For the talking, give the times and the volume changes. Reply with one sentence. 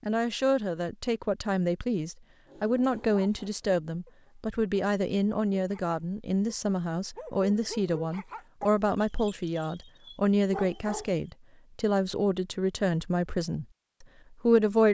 You can hear the talking from 0.0 to 14.8 s, at a steady volume.